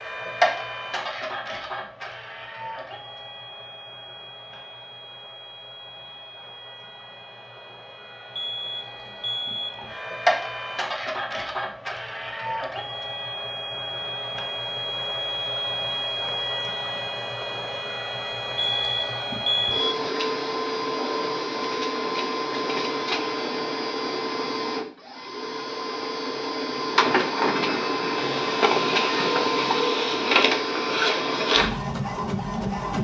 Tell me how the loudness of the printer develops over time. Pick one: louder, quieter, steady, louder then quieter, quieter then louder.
louder.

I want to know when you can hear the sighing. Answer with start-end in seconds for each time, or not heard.
not heard.